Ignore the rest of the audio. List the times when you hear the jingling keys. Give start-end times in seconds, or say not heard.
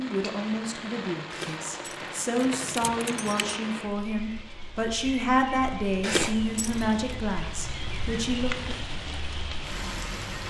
1.3-3.5, 6.0-7.0.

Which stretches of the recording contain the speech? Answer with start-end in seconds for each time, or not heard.
0.0-8.5.